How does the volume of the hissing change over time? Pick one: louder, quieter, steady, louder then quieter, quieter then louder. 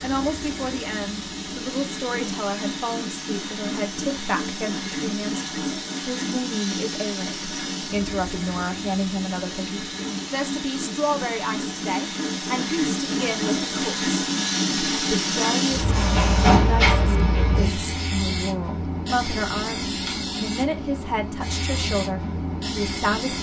louder then quieter.